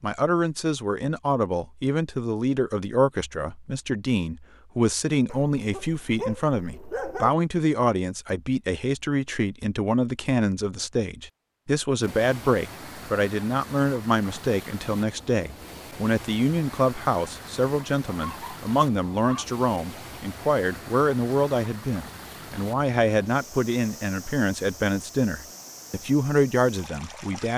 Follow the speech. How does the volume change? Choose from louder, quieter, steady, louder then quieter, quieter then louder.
steady.